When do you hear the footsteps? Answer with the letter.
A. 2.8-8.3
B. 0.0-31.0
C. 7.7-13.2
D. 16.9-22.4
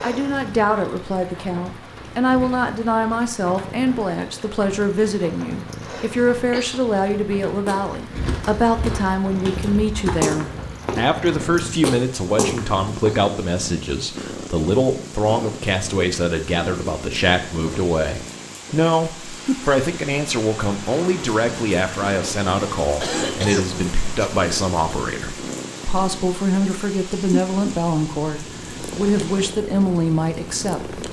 C.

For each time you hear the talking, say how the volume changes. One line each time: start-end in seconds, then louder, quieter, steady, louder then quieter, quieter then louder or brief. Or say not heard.
0.0-31.0 steady.